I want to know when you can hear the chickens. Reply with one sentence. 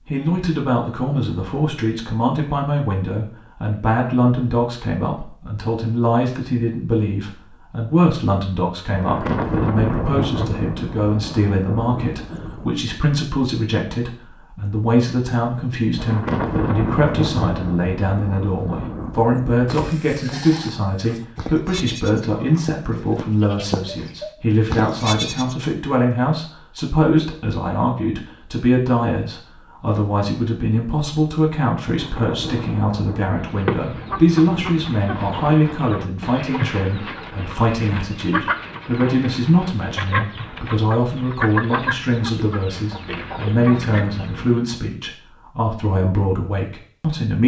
You can hear the chickens from 33.4 to 44.6 s.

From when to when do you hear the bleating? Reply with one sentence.
You can hear the bleating from 19.6 to 25.6 s.